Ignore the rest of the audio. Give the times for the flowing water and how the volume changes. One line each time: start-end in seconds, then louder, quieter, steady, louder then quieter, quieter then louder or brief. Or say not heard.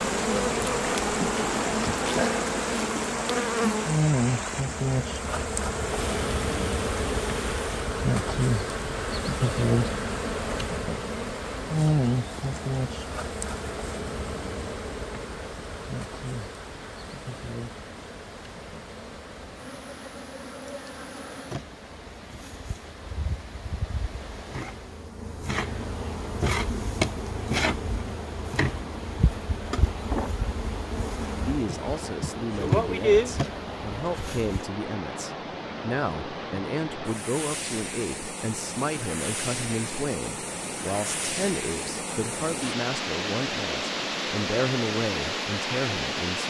0.0-46.4 quieter then louder.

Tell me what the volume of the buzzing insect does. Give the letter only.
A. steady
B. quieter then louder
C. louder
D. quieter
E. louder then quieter
B.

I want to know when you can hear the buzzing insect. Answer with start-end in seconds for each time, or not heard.
0.0-34.6.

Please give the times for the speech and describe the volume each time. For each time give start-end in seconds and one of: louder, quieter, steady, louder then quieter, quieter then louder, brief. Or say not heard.
31.4-46.4 steady.